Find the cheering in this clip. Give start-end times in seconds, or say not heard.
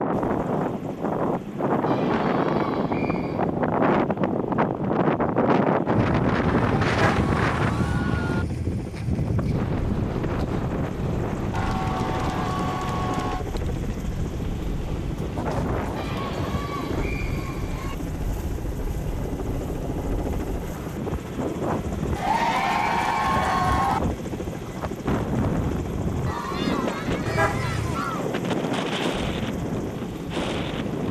1.9-3.5, 6.4-8.4, 11.5-13.4, 15.9-17.9, 22.1-24.0, 26.2-28.2.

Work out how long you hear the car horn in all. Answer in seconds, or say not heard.
2 s.